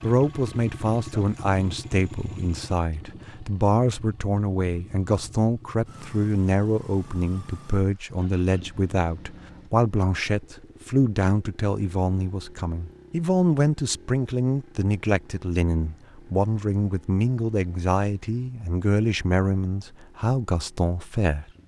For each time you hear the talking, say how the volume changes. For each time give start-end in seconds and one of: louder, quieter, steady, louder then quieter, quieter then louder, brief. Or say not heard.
0.0-21.4 steady.